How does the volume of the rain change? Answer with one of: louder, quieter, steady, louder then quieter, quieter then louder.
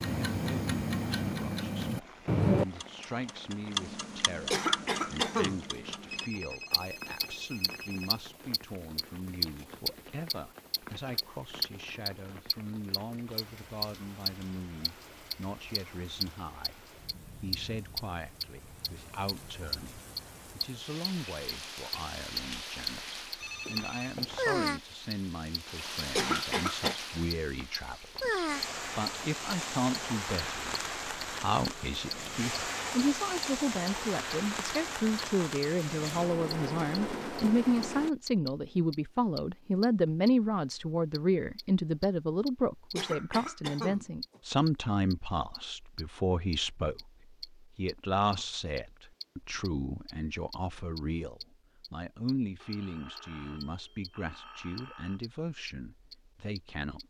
louder.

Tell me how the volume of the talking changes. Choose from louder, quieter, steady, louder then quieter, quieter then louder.
louder then quieter.